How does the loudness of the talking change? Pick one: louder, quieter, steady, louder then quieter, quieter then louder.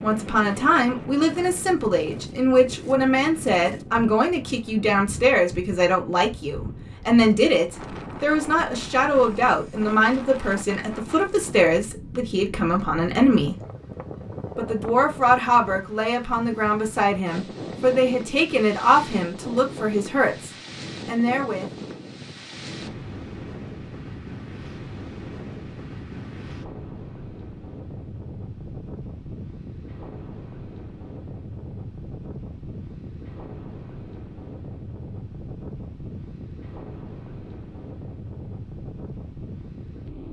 steady.